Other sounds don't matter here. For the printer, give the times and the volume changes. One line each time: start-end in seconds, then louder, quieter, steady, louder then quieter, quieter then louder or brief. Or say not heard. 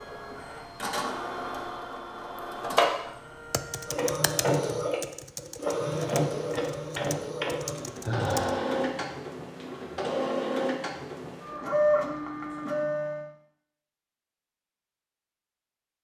0.0-13.2 steady.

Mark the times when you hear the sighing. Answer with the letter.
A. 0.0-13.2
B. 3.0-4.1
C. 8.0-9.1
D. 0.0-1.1
C.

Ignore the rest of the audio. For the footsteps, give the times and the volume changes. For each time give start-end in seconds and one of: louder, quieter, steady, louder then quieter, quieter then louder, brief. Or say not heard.
not heard.